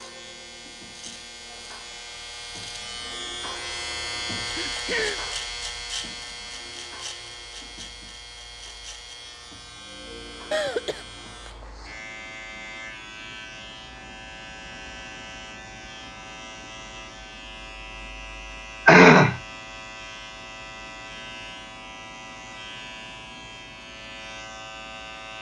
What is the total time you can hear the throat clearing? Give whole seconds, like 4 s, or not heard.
2 s.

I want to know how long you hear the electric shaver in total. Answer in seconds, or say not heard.
25 s.